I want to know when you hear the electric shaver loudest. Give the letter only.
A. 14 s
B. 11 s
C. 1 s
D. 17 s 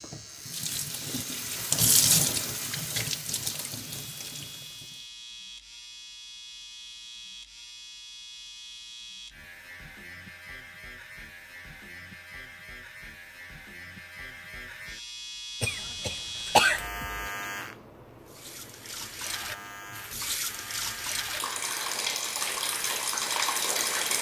D.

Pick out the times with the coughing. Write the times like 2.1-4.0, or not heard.
15.6-16.9.